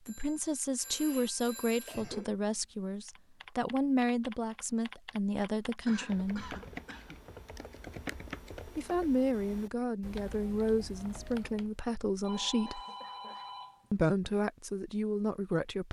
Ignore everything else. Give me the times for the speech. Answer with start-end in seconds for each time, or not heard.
0.1-6.5, 8.8-12.8, 13.9-15.8.